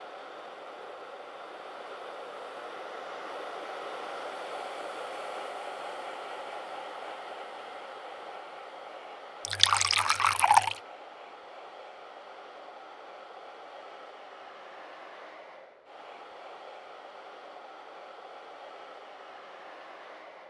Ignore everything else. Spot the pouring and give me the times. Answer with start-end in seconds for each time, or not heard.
9.4-10.8.